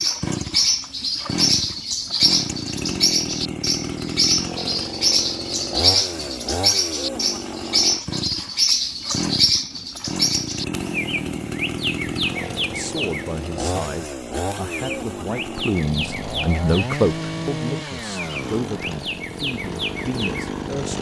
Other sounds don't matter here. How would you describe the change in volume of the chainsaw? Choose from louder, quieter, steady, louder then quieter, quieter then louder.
steady.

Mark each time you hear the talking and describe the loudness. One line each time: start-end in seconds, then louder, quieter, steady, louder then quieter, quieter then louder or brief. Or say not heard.
12.7-20.9 louder then quieter.